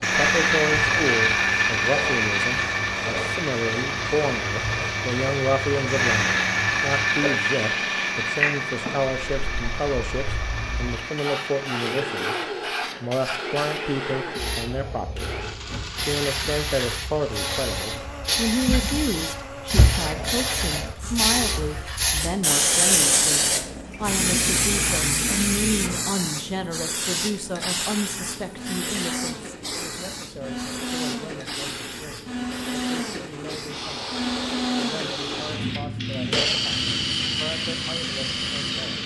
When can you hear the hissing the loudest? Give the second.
23 s.